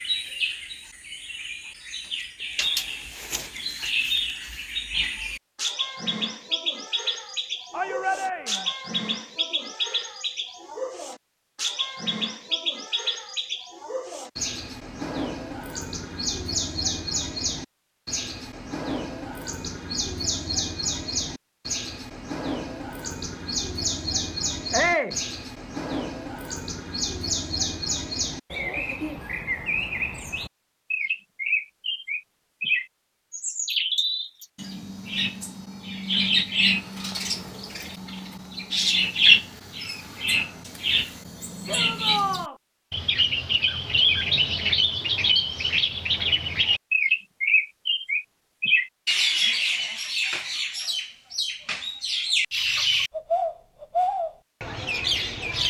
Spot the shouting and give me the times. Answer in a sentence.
You can hear the shouting from 7.7 to 8.7 s, from 24.7 to 25.2 s and from 41.6 to 42.5 s.